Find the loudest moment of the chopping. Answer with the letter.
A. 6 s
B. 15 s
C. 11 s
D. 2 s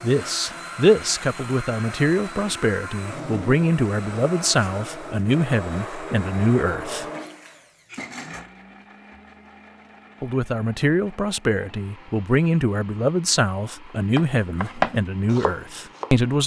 B.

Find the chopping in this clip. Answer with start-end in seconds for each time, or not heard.
14.1-16.2.